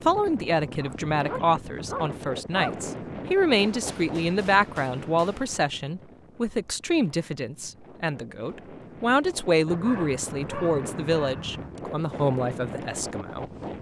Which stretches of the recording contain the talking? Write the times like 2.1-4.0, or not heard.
0.0-13.4.